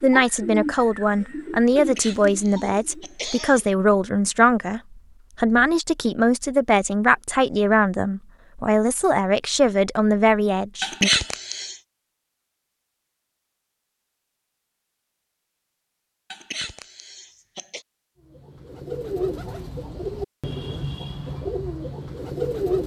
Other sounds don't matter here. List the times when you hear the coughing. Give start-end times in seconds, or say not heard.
1.8-3.7, 10.8-11.8, 16.3-17.9.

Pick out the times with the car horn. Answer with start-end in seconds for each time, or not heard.
not heard.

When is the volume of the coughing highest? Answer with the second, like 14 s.
11 s.